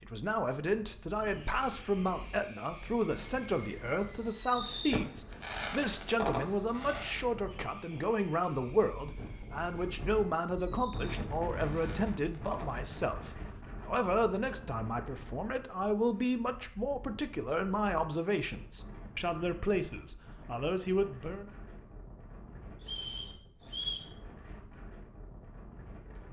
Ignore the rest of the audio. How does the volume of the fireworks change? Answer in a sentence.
The loudness of the fireworks goes down.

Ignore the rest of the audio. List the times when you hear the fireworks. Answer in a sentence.
You can hear the fireworks from 1.2 to 12.9 s.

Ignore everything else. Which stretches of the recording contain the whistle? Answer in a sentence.
You can hear the whistle from 22.8 to 24.1 s.